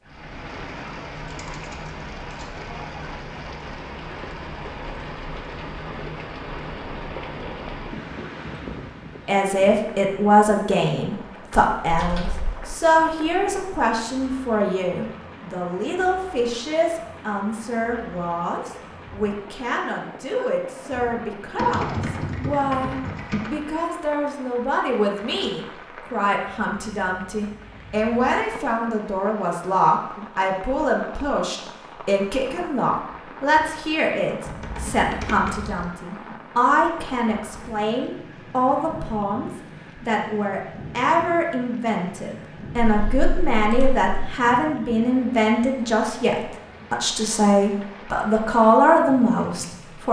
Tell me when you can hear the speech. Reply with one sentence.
The speech can be heard from 9.2 to 50.0 s.